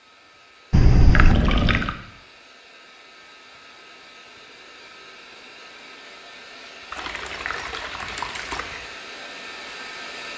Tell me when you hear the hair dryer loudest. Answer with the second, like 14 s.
10 s.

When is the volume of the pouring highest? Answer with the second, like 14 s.
1 s.